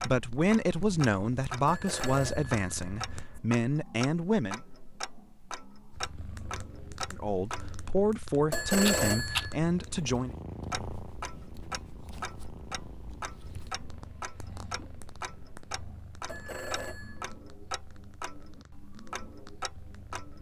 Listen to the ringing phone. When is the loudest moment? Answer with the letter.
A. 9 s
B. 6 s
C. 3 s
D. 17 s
A.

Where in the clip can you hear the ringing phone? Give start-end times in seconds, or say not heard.
1.6-3.4, 8.5-9.6, 16.2-17.2.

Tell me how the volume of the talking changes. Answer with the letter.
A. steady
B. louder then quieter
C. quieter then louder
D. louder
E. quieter
A.